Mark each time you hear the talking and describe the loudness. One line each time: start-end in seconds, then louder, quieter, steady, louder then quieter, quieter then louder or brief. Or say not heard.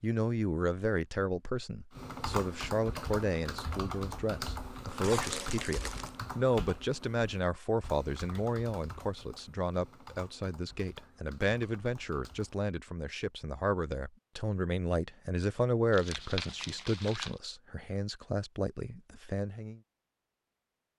0.0-19.8 steady.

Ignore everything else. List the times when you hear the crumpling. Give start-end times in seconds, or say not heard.
5.0-6.2, 15.9-17.4.